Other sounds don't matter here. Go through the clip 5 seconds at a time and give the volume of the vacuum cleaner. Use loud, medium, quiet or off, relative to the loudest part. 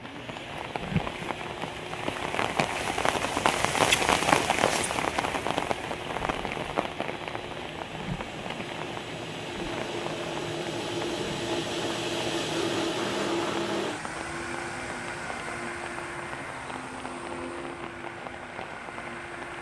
medium, medium, loud, medium.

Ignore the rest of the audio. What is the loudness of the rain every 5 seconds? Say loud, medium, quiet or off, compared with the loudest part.
loud, medium, quiet, quiet.